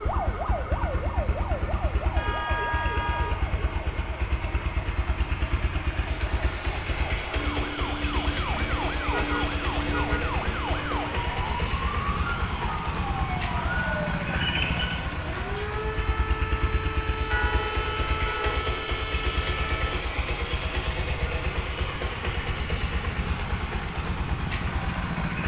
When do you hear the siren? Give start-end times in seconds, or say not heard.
0.0-20.0.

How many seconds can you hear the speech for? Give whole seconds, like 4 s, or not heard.
not heard.